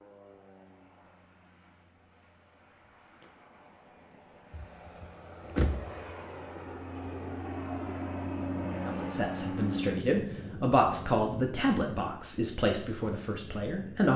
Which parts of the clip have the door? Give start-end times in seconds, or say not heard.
4.5-6.0.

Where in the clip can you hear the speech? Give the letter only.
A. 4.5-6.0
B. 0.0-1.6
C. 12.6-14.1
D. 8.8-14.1
D.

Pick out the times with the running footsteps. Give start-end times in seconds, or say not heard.
not heard.